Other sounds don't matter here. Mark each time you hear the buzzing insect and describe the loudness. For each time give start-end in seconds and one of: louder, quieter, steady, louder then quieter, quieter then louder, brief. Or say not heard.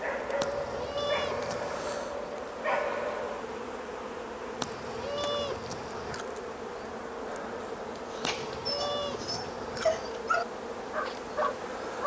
0.0-12.0 steady.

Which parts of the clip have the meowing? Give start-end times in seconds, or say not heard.
0.4-1.9, 4.6-6.2, 8.2-10.2.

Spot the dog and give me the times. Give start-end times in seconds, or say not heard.
0.0-3.5, 8.1-12.0.